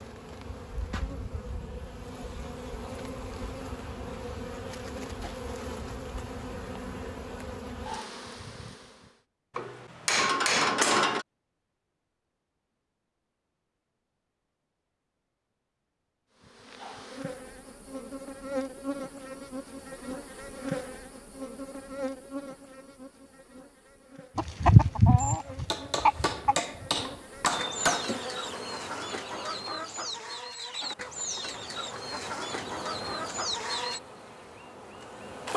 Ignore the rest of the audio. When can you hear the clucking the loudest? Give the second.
25 s.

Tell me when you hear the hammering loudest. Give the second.
11 s.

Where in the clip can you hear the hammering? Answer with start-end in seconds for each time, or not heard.
9.6-11.2, 25.1-28.1.